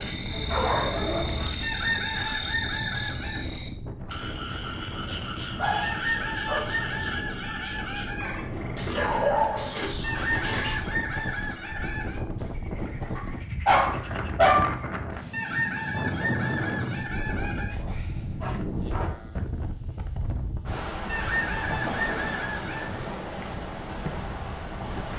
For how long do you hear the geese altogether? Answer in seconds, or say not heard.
11 s.